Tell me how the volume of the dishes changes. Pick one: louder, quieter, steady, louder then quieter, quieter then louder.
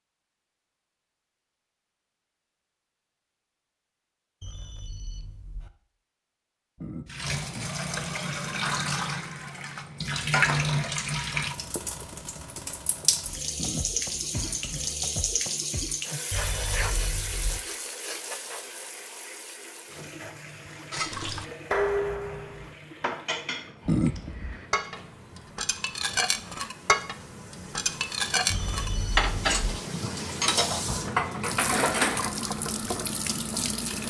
quieter then louder.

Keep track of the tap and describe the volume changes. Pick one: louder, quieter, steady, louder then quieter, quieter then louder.
quieter then louder.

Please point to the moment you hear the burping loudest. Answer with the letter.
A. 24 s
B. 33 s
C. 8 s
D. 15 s
A.